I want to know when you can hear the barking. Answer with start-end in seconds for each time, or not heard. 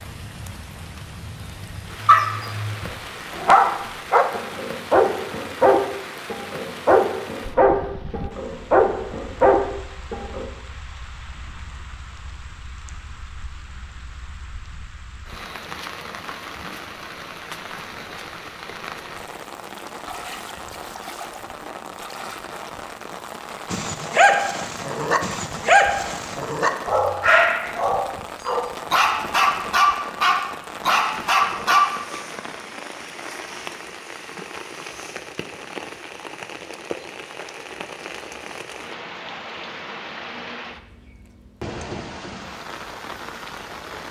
2.0-10.4, 23.7-32.0.